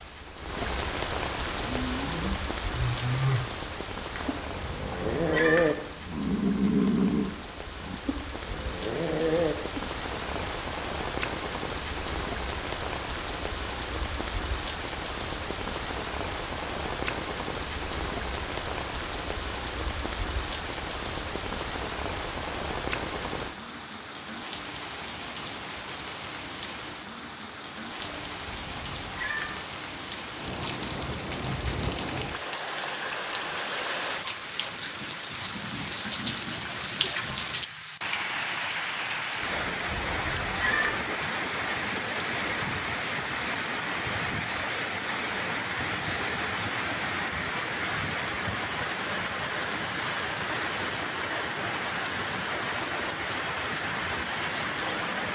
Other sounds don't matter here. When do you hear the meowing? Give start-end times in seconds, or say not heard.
4.2-5.8, 27.9-29.6, 39.4-41.0.